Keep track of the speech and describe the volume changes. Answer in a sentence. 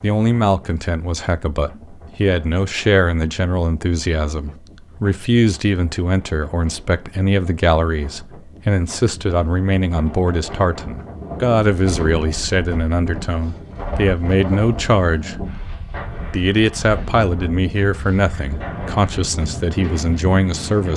The loudness of the speech stays about the same.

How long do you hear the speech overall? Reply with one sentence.
The speech can be heard for 20 seconds in total.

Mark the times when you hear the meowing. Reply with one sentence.
The meowing can't be heard in this clip.